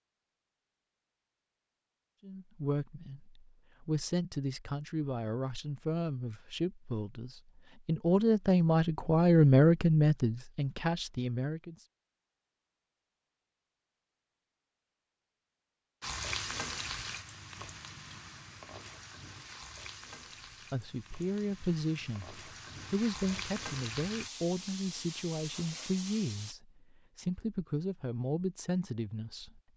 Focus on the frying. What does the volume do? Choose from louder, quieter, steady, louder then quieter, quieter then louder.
quieter then louder.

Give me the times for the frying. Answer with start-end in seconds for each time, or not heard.
16.0-26.6.